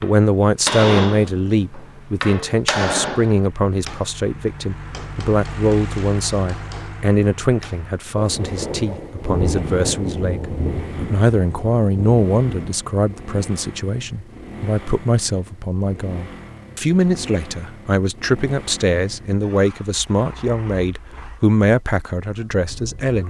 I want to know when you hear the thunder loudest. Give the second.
9 s.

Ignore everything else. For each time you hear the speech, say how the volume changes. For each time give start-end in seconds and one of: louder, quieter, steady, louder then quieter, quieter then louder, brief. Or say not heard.
0.0-23.2 steady.